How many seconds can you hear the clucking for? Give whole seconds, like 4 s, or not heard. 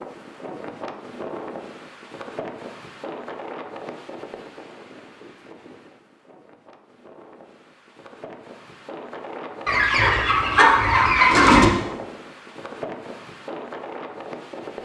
2 s.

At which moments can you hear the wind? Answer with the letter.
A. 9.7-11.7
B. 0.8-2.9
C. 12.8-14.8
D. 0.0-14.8
D.